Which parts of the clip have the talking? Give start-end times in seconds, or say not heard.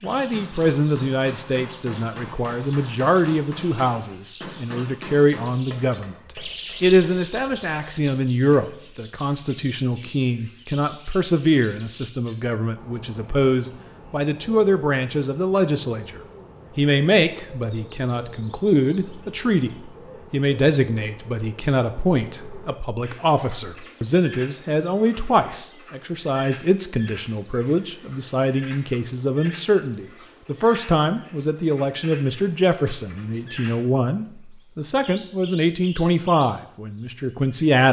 0.0-6.2, 6.8-37.8.